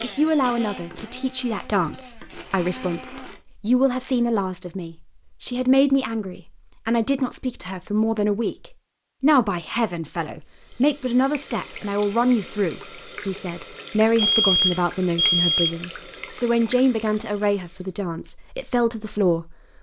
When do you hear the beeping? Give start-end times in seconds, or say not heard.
14.2-15.8.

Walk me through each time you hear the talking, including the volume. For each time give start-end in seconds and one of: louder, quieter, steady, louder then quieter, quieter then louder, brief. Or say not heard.
0.0-19.6 steady.